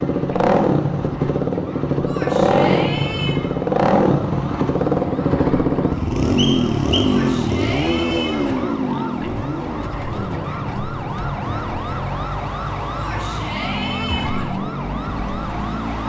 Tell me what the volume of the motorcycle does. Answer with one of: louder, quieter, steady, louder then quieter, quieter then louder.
quieter.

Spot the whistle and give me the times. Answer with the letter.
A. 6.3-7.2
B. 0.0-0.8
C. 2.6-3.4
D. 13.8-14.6
A.